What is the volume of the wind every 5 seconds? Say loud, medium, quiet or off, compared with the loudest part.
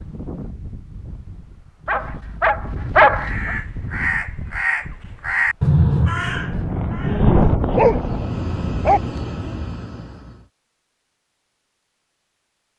quiet, loud, off.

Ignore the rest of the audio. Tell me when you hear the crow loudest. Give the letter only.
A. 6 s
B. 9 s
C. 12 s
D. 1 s
A.